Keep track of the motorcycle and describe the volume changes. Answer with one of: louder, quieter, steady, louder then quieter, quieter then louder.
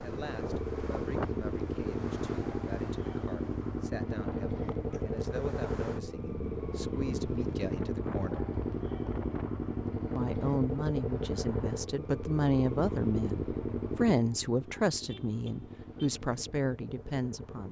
quieter.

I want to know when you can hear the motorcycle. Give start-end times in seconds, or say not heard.
0.0-17.6.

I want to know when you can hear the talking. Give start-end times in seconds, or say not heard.
0.0-8.5, 10.2-17.6.